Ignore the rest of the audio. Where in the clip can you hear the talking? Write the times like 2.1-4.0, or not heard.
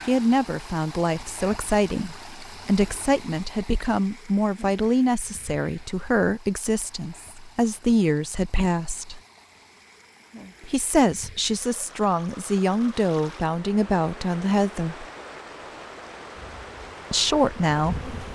0.1-9.2, 10.7-15.1, 17.1-18.3.